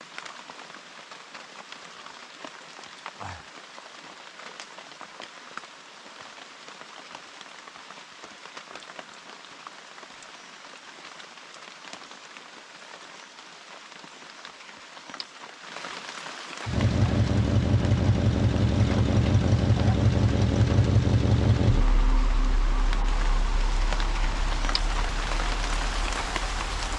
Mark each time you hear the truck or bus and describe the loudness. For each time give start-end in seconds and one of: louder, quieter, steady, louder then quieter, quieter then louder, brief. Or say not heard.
16.6-26.9 quieter.